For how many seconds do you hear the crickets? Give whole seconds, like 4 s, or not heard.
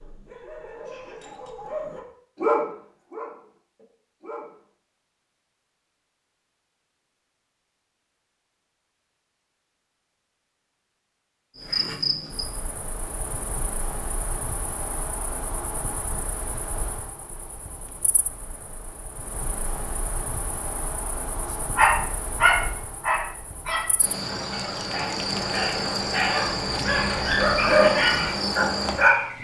18 s.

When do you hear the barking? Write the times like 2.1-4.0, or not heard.
0.0-4.5, 21.8-29.2.